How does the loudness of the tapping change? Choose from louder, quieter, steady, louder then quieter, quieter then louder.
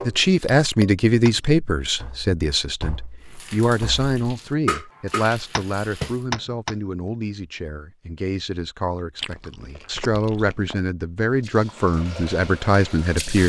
quieter then louder.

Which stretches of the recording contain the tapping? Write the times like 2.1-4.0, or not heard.
0.0-6.8.